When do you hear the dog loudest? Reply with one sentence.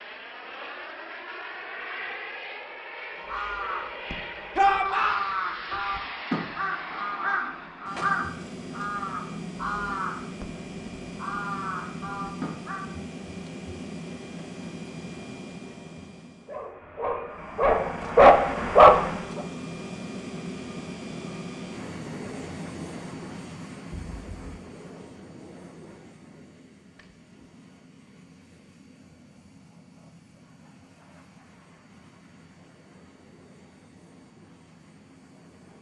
The volume of the dog peaks at 19 seconds.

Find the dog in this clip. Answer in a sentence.
The dog can be heard from 16.4 to 19.4 s.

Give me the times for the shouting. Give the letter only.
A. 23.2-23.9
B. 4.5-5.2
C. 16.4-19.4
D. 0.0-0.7
B.